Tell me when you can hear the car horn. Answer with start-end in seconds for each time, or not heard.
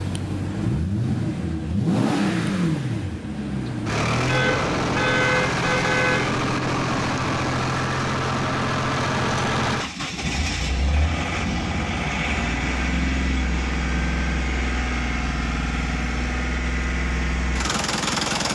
4.2-6.2.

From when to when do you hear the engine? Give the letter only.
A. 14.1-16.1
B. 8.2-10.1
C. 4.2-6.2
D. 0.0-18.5
D.